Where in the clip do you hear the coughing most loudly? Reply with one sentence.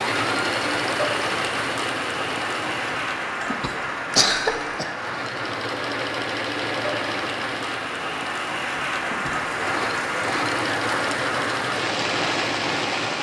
The volume of the coughing peaks at 4 seconds.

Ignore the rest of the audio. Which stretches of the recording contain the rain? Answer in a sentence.
You can hear the rain from 0.0 to 13.1 s.